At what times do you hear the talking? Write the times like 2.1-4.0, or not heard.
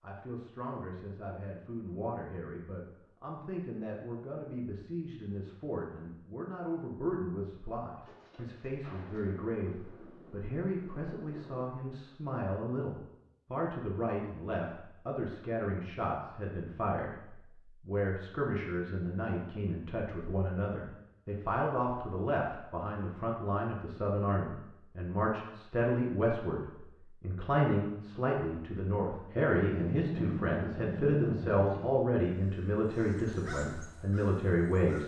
0.0-35.0.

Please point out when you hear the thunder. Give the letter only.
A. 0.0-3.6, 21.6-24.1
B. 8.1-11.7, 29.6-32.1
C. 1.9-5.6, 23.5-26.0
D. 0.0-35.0
B.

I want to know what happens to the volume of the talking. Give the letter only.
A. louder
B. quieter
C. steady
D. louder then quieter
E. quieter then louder
A.